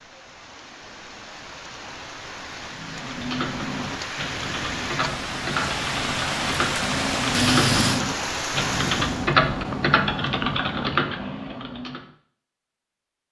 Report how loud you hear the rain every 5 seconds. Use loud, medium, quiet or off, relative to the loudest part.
medium, loud, off.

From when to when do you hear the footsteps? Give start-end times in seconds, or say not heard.
not heard.